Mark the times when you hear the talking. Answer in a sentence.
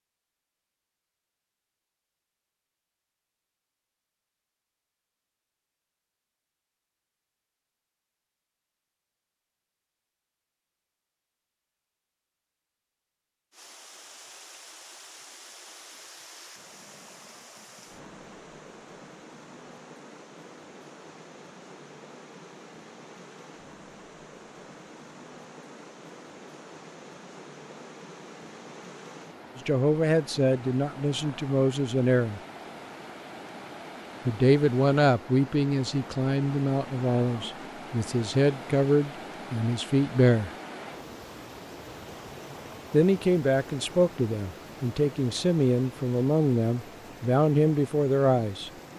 You can hear the talking from 29.6 to 32.4 s, from 34.2 to 40.5 s and from 42.9 to 48.7 s.